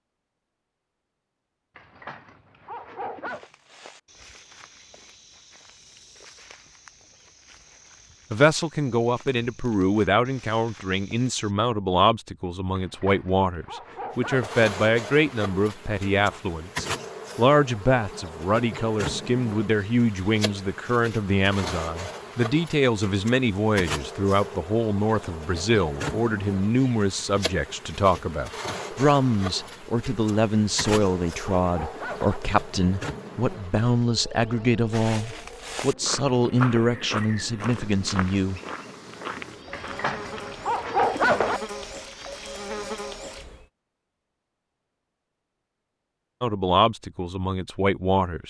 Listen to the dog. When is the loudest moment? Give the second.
41 s.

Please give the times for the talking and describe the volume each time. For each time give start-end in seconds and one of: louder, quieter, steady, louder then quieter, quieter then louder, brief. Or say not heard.
8.3-38.6 steady
46.4-48.4 brief.